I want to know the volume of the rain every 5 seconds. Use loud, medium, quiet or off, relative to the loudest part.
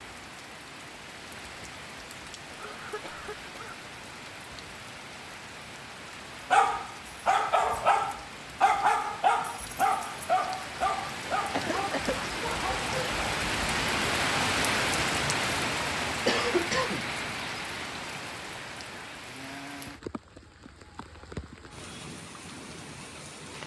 quiet, quiet, loud, loud, quiet.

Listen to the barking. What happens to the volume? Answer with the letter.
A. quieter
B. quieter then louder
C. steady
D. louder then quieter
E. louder
A.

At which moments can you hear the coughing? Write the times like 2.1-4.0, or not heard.
2.5-3.8, 11.5-12.2, 16.2-17.1.